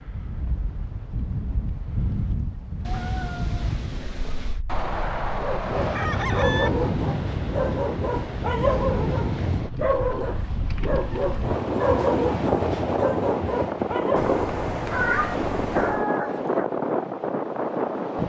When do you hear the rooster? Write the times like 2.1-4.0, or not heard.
4.7-6.7.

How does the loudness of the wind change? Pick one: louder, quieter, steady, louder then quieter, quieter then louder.
louder.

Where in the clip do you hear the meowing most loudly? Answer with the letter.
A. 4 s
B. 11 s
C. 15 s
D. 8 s
C.